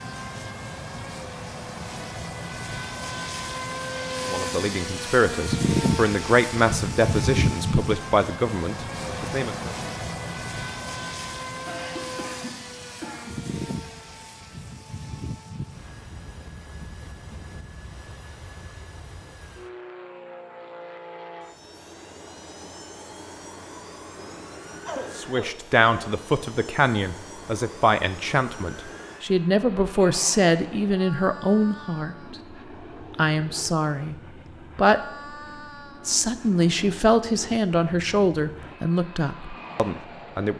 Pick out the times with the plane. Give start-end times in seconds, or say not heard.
0.0-40.5.